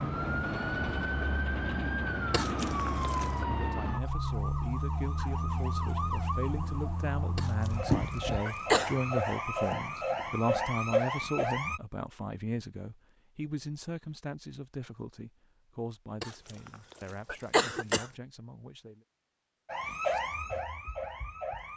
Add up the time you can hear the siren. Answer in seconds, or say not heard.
14 s.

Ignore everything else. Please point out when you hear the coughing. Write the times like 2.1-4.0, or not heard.
2.3-3.5, 7.3-9.0, 16.2-18.1.